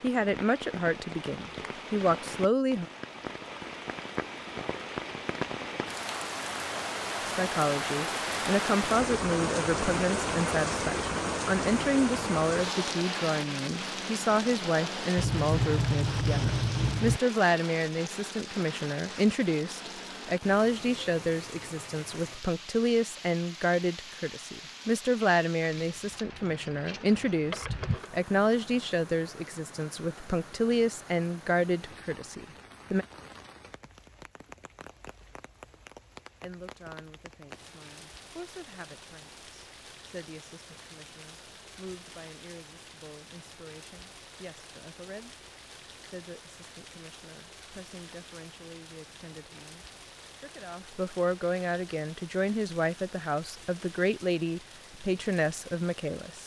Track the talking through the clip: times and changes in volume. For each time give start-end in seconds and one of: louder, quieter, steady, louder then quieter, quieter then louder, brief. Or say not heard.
0.0-2.9 brief
7.2-33.0 steady
36.4-56.4 louder.